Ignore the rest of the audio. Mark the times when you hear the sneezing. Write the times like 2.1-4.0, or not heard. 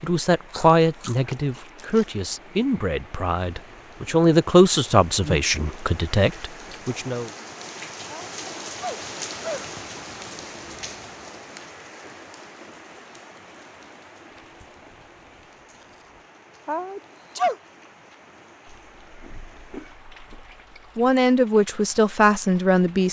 8.1-9.7, 16.6-17.6.